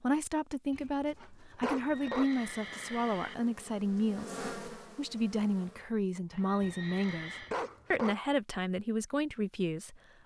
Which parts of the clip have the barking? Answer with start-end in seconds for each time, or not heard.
0.7-2.3, 6.6-8.2.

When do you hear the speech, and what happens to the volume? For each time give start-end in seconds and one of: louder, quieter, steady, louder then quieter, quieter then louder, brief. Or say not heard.
0.0-10.0 steady.